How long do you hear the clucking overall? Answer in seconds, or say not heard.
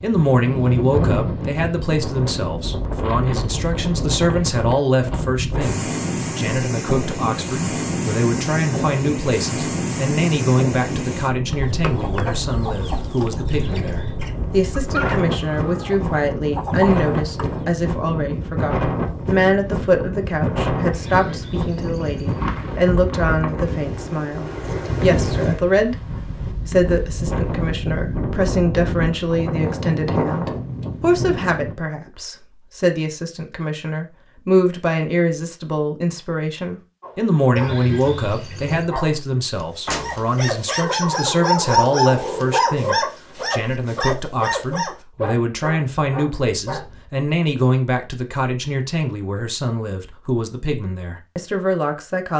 6 s.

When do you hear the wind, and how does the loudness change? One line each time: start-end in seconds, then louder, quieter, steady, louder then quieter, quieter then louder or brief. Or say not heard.
0.0-31.8 steady.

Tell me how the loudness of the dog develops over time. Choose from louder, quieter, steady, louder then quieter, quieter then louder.
louder then quieter.